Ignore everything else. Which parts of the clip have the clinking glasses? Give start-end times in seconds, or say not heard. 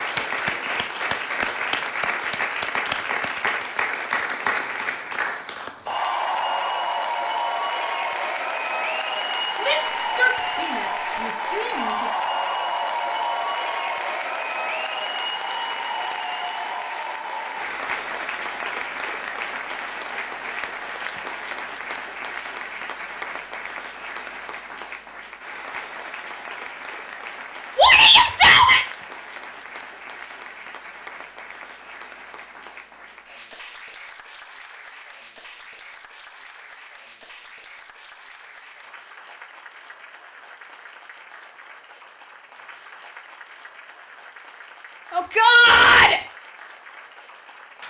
not heard.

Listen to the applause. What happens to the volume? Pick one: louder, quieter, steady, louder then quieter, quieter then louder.
quieter.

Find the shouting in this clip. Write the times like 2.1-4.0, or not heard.
9.6-12.1, 27.8-28.9, 45.1-46.2.